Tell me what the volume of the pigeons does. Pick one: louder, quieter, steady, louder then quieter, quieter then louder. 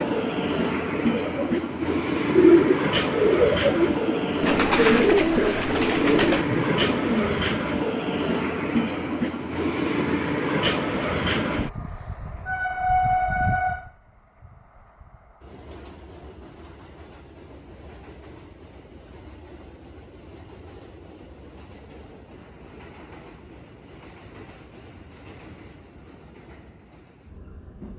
quieter.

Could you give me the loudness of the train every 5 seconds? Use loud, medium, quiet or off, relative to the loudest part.
loud, loud, loud, quiet, quiet, quiet.